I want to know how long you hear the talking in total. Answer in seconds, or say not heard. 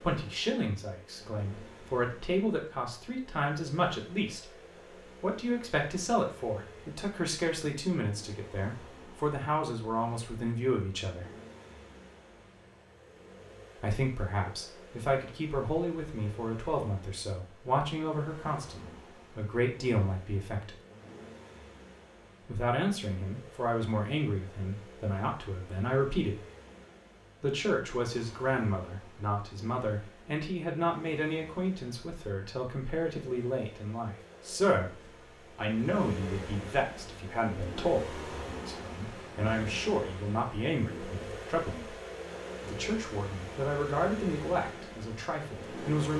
40 s.